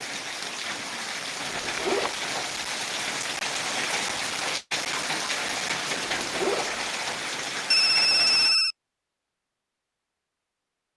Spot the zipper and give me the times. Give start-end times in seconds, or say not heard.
1.4-2.1, 6.0-6.8.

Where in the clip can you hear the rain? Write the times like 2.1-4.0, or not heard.
0.0-8.6.